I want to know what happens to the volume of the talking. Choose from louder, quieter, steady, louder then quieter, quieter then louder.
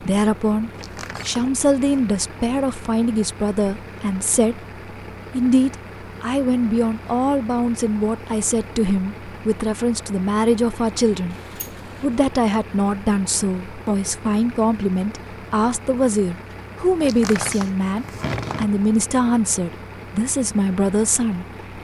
steady.